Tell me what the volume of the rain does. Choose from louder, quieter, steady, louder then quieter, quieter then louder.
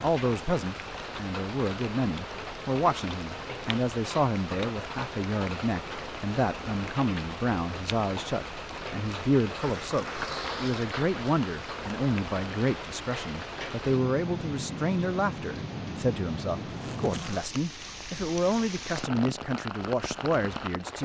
steady.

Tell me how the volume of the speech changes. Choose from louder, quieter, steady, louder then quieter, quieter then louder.
steady.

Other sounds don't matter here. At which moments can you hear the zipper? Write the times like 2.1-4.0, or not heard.
16.6-17.5.